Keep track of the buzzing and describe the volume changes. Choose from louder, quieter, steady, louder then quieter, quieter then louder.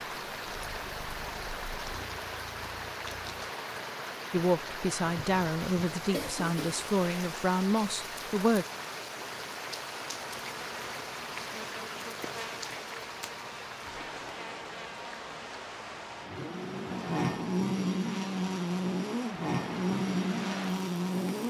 louder.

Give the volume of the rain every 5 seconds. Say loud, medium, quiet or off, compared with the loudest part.
loud, loud, loud, medium, loud.